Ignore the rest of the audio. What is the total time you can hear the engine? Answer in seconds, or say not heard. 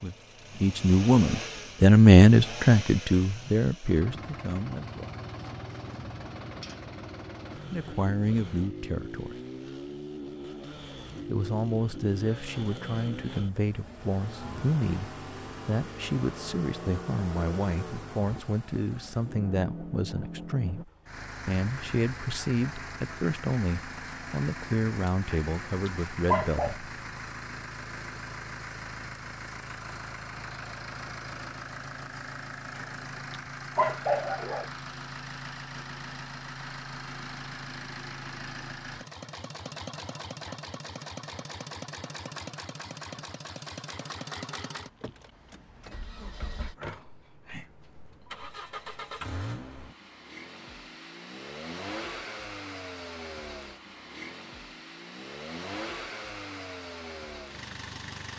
58 s.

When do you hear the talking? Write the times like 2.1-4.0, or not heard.
0.0-5.1, 7.7-9.4, 11.2-26.9.